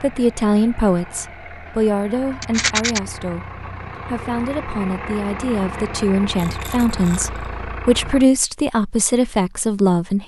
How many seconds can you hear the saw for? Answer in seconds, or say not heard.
not heard.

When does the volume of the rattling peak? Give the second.
3 s.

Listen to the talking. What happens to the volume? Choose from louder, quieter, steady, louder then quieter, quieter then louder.
quieter then louder.